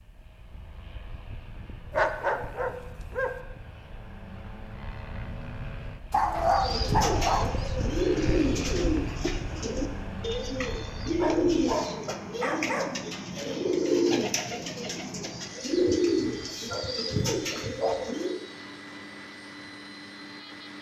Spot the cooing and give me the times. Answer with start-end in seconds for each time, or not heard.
6.4-18.4.